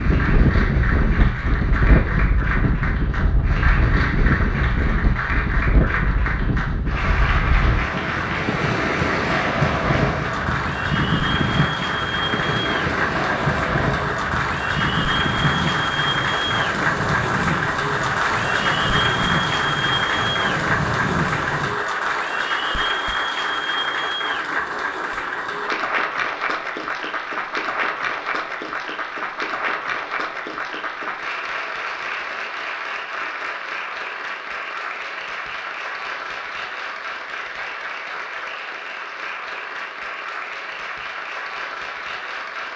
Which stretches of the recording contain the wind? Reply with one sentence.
You can hear the wind from 0.0 to 21.8 s.